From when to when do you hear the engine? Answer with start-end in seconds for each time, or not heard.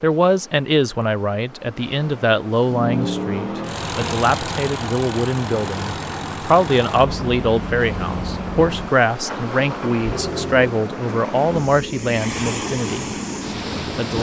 2.6-14.1.